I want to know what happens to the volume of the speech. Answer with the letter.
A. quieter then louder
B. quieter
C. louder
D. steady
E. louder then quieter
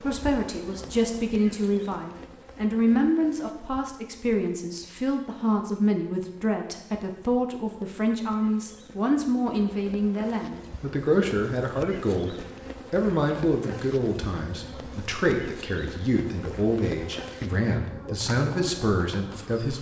D.